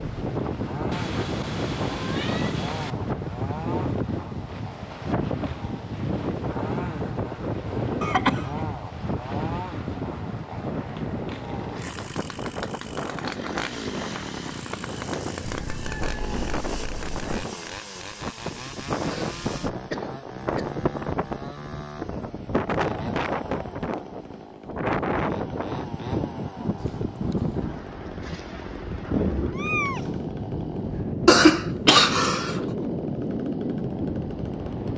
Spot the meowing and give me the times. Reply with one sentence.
You can hear the meowing from 0.9 to 2.9 s, from 15.6 to 17.2 s and from 29.5 to 30.2 s.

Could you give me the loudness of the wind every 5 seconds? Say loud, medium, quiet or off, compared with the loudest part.
loud, loud, medium, loud, loud, loud, loud.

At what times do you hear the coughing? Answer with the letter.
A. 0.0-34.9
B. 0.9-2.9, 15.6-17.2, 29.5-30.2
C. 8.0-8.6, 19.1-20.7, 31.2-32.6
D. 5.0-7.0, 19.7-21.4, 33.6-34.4
C.